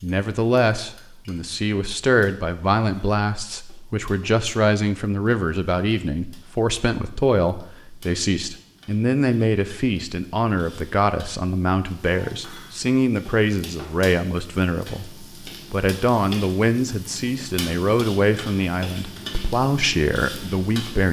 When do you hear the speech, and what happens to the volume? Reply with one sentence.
The speech can be heard from 0.0 to 21.0 s, at a steady volume.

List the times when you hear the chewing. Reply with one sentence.
The chewing can't be heard in this clip.